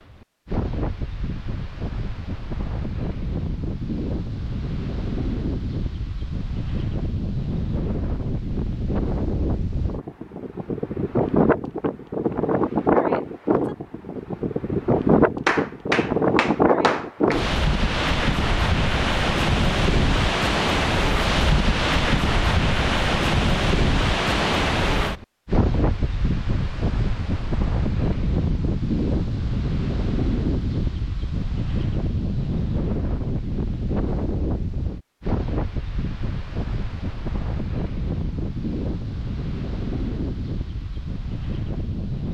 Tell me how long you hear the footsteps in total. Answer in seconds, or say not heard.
not heard.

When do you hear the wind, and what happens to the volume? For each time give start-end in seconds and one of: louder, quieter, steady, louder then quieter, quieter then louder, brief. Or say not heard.
0.0-42.3 louder then quieter.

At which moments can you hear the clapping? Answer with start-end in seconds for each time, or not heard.
15.4-17.4.